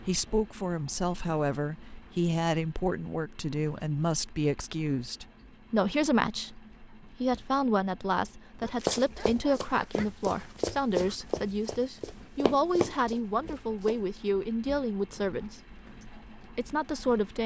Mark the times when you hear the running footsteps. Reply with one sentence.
You can hear the running footsteps from 8.6 to 14.0 s.